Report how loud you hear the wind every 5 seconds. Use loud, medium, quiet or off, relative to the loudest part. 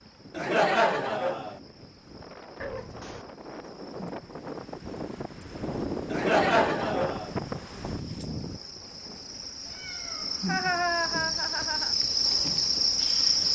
medium, loud, off.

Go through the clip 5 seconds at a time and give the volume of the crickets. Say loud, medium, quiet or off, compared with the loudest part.
quiet, quiet, loud.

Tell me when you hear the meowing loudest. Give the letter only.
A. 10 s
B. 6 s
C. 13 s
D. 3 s
D.